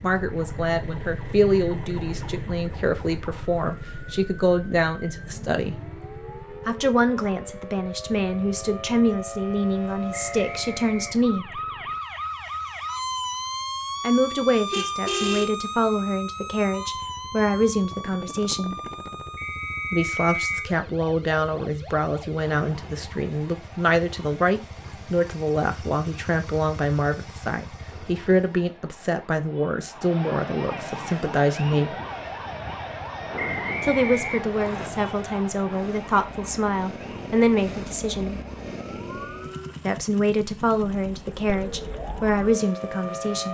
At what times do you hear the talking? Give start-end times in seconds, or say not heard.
0.0-5.8, 6.7-11.6, 14.0-18.8, 19.9-31.9, 33.8-38.4, 39.9-43.5.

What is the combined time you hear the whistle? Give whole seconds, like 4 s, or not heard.
4 s.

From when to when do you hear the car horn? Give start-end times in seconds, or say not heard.
14.7-15.6.